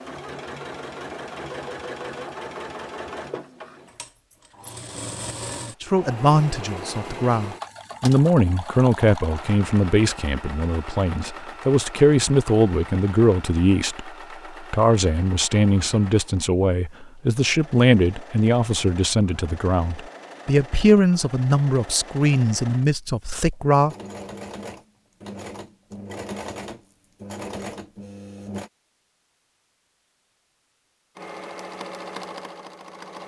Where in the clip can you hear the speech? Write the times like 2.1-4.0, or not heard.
5.8-23.9.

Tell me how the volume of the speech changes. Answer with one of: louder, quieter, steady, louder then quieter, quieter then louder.
steady.